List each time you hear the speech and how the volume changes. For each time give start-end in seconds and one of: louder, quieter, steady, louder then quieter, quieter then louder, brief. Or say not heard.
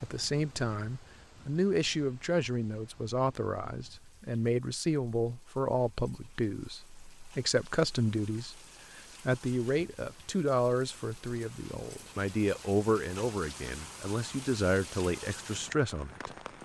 0.0-16.6 steady.